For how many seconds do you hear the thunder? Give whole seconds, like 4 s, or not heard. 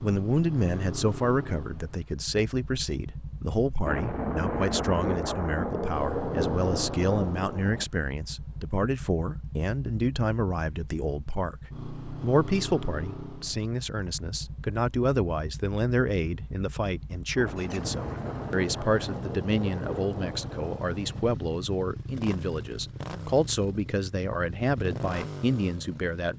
8 s.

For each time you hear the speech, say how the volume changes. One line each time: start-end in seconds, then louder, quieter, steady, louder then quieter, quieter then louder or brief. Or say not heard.
0.0-26.3 steady.